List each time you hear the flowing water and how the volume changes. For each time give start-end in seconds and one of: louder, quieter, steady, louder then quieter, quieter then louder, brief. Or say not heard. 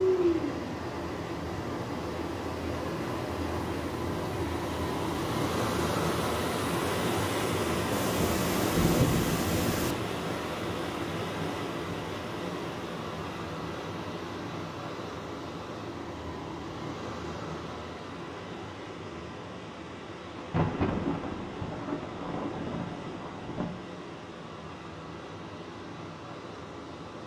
0.0-27.2 quieter.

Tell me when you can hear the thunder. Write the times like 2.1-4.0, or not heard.
7.9-9.9, 20.4-23.8.